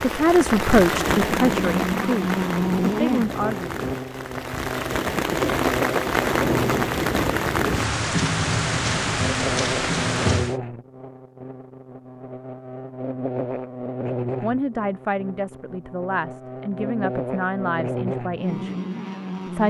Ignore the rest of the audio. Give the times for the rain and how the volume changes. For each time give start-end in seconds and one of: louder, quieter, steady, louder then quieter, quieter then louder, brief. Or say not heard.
0.0-10.6 quieter then louder.